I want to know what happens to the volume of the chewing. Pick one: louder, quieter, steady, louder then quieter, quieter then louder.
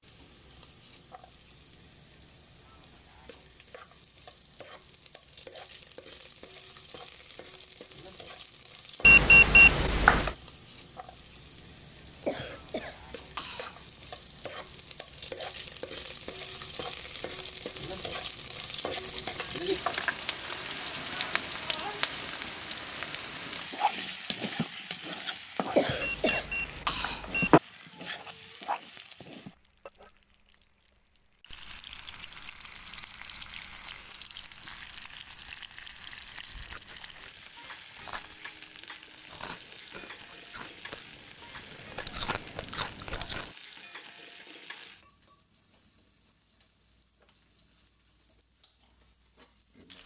louder.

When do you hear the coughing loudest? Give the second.
26 s.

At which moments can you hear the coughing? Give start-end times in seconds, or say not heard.
12.2-14.0, 25.7-27.5.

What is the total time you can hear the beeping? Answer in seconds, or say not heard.
3 s.